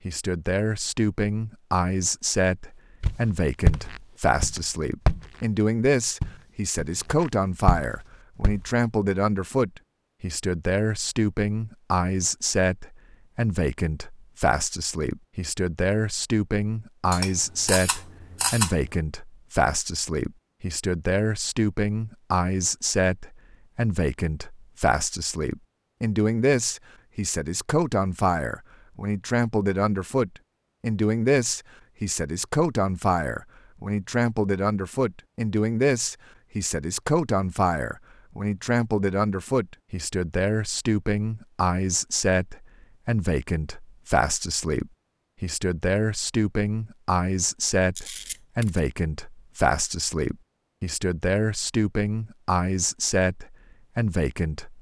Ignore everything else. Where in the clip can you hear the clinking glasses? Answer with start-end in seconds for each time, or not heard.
not heard.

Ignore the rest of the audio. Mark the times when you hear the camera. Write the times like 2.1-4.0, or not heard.
17.1-18.9, 48.0-48.8.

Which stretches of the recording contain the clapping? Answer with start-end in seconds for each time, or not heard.
not heard.